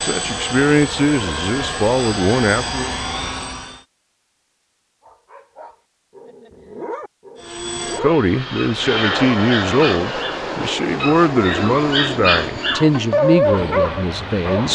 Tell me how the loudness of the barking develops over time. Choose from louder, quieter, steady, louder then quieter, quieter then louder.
louder.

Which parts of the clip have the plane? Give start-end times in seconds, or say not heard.
0.0-3.8, 7.3-14.7.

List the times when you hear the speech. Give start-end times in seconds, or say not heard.
0.0-3.0, 8.0-14.7.